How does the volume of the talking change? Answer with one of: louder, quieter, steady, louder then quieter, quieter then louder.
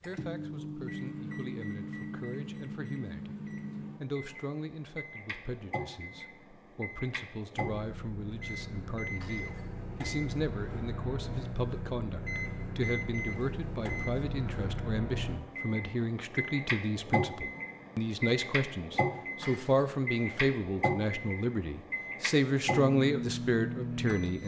louder.